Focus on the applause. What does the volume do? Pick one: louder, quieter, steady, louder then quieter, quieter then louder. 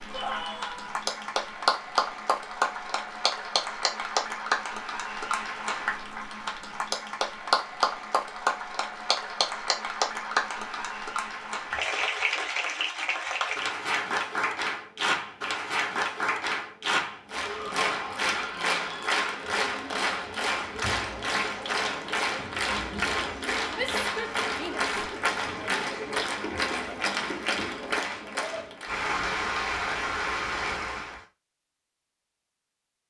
steady.